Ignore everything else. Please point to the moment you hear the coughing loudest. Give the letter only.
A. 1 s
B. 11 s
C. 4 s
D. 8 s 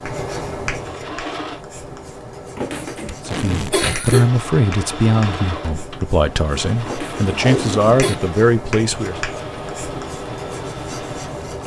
C.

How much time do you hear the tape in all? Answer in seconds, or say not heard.
2 s.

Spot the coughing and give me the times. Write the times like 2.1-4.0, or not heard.
2.5-4.3, 6.8-8.2.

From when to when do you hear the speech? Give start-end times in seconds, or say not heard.
3.2-9.2.